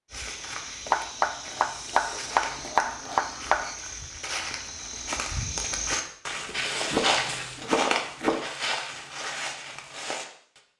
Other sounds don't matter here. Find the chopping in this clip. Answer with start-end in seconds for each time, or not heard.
0.9-3.8, 6.9-8.5.